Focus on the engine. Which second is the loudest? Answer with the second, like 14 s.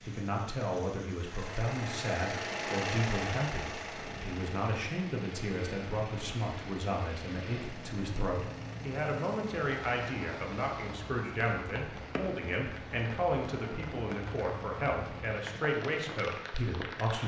3 s.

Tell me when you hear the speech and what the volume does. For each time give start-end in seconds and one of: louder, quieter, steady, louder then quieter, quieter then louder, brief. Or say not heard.
0.0-17.2 steady.